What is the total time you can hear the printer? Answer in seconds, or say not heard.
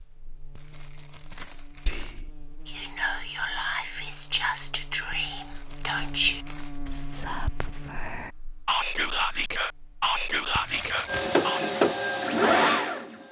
2 s.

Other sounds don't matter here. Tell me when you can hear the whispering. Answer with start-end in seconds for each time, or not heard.
1.9-11.8.